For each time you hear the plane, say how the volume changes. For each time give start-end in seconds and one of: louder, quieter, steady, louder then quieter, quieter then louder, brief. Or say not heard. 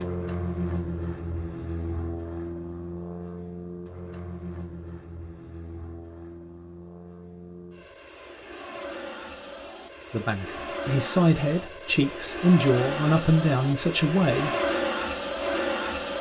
0.0-16.1 quieter then louder.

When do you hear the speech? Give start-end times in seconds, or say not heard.
10.1-14.5.